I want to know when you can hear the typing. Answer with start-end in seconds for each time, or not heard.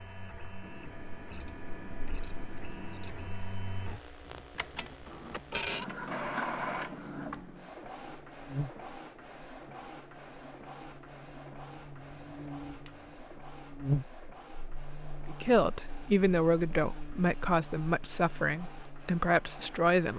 not heard.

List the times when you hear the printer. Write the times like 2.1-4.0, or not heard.
0.0-20.1.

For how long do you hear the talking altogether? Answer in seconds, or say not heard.
5 s.